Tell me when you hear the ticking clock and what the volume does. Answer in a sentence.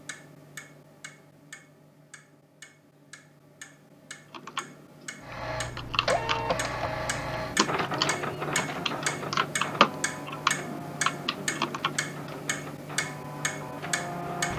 The ticking clock can be heard from 0.0 to 14.5 s, getting louder.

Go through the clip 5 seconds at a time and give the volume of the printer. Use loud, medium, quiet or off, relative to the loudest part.
off, loud, medium.